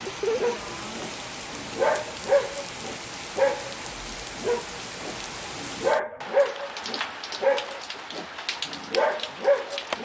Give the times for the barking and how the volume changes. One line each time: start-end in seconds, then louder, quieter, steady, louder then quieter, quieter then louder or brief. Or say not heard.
0.3-10.0 steady.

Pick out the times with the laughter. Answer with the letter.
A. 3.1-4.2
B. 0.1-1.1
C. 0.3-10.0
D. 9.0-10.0
B.